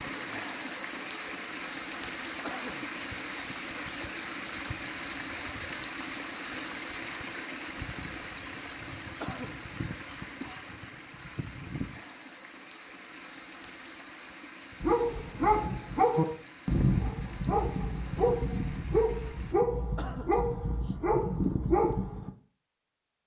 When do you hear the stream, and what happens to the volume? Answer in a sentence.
You can hear the stream from 0.0 to 19.6 s, getting quieter.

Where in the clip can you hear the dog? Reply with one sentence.
The dog can be heard from 14.8 to 22.3 s.